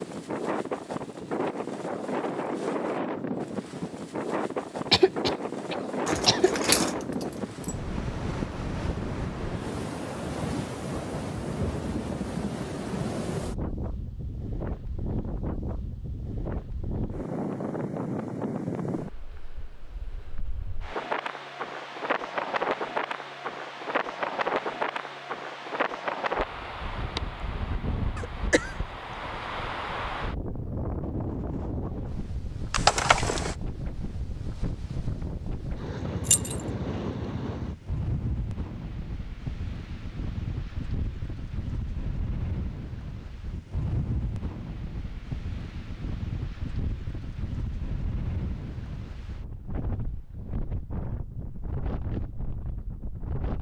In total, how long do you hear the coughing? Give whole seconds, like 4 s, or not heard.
2 s.